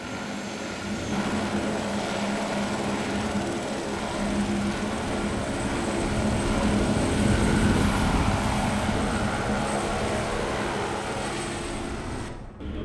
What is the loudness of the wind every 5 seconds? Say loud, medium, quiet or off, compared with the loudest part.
medium, loud, medium.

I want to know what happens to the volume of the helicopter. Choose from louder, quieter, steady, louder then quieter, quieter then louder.
steady.